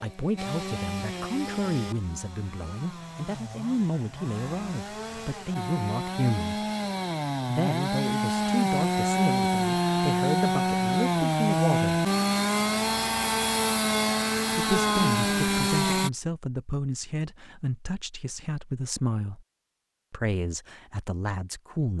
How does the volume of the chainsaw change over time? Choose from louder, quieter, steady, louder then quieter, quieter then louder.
louder.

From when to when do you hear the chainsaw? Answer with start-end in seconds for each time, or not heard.
0.0-16.1.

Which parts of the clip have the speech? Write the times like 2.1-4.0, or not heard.
0.0-6.7, 7.5-12.0, 14.6-19.4, 20.1-21.9.